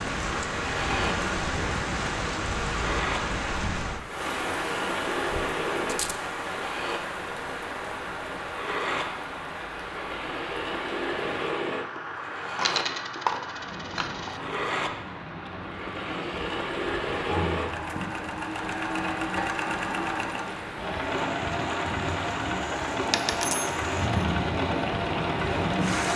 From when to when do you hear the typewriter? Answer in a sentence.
You can't hear the typewriter here.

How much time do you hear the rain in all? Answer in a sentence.
The rain can be heard for 26 seconds in total.